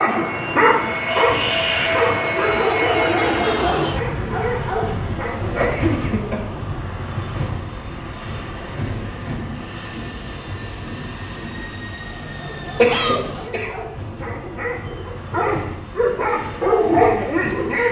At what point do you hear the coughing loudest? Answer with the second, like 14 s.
13 s.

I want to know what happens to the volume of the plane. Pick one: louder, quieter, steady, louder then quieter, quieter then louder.
quieter.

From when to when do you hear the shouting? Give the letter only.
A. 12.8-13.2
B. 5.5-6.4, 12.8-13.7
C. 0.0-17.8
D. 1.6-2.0
A.